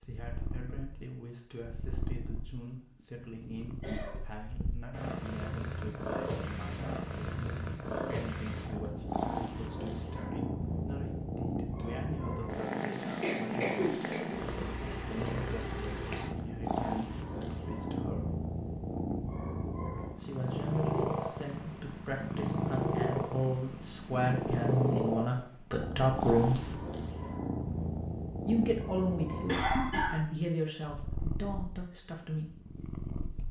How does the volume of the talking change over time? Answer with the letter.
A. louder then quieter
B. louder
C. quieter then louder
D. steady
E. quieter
B.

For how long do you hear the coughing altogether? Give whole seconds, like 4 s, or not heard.
3 s.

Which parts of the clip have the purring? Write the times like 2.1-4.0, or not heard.
0.0-33.4.